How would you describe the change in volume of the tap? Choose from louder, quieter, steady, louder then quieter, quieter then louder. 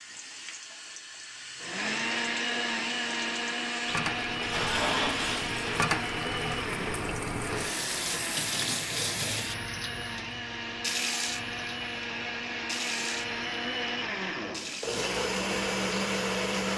louder then quieter.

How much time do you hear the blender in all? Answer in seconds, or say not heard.
15 s.